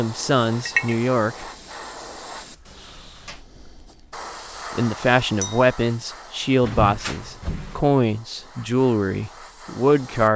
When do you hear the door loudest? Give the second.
7 s.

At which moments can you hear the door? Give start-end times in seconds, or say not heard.
2.6-3.5, 6.6-7.8.